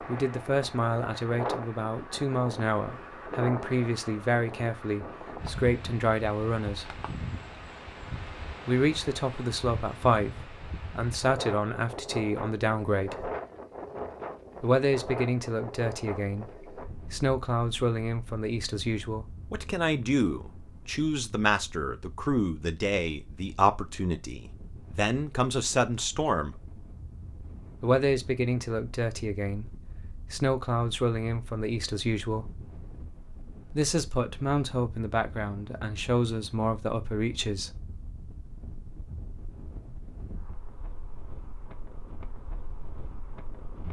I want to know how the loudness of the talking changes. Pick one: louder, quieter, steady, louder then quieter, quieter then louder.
steady.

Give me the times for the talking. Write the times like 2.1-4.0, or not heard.
0.1-7.0, 8.7-13.3, 14.6-26.6, 27.8-32.5, 33.7-37.7.